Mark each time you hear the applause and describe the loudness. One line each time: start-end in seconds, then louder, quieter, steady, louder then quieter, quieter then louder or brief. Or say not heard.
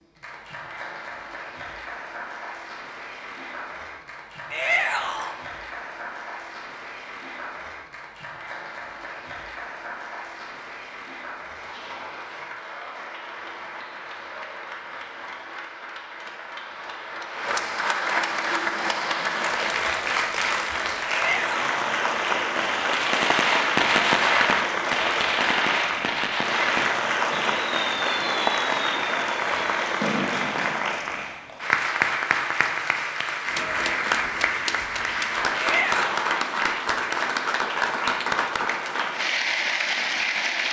0.0-40.6 louder.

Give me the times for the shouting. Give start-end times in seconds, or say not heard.
4.5-5.3, 21.1-21.8, 35.5-36.4.